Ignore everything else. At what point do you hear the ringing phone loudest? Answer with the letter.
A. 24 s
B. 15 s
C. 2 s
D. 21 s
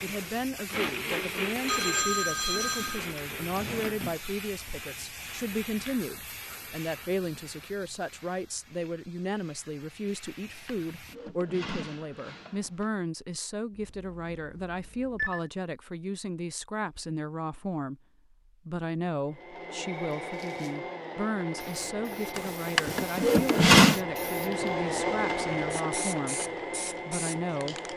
C.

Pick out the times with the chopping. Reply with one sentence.
You can't hear the chopping here.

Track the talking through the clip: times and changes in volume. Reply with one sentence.
You can hear the talking from 0.0 to 27.9 s, at a steady volume.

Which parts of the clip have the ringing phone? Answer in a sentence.
You can hear the ringing phone from 1.6 to 3.0 s, from 13.8 to 15.5 s and from 19.8 to 20.8 s.